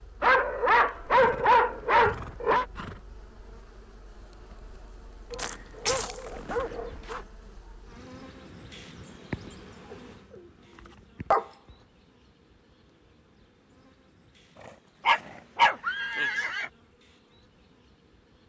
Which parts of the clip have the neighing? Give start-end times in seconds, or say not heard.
1.1-3.0, 14.6-16.7.